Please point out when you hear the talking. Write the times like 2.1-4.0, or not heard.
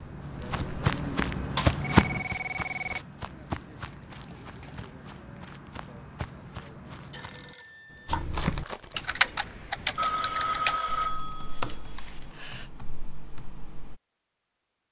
not heard.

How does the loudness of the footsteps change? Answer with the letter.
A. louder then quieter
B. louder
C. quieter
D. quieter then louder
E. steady
C.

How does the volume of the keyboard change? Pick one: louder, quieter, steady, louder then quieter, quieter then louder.
quieter.